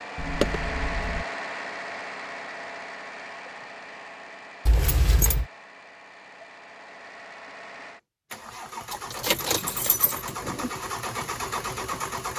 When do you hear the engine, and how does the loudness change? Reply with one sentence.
You can hear the engine from 0.0 to 12.3 s, getting quieter then louder.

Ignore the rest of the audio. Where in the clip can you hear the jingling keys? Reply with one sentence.
You can hear the jingling keys from 0.1 to 1.2 s, from 4.7 to 5.5 s and from 8.9 to 10.7 s.